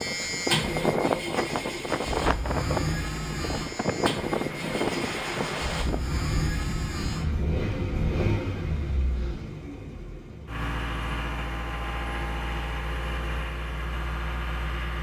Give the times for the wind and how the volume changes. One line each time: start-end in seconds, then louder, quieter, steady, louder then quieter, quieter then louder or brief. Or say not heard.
0.0-9.6 quieter.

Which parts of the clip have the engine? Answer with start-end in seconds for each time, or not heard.
0.0-14.9.